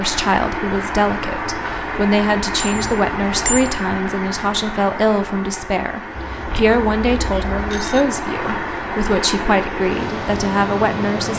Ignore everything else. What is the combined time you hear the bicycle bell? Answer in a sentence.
You can hear the bicycle bell for 3 seconds altogether.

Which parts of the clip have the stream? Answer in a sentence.
The stream can be heard from 0.0 to 11.3 s.